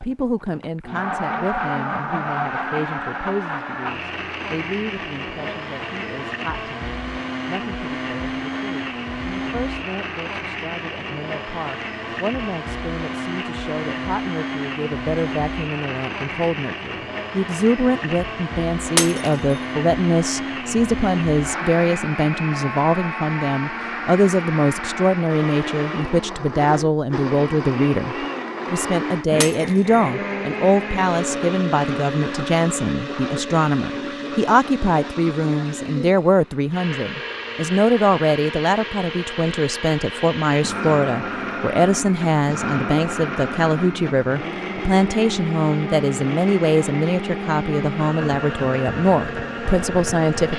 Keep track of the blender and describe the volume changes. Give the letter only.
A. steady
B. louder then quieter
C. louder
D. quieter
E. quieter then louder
A.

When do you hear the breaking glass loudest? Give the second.
19 s.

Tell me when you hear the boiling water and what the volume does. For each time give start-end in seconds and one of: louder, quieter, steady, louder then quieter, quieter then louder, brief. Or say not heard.
not heard.